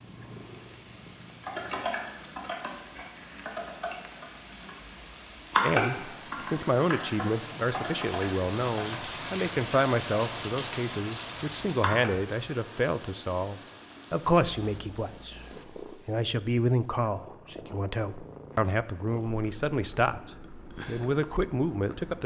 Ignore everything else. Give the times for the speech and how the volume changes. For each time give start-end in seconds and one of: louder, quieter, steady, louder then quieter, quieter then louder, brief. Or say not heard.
5.6-22.2 steady.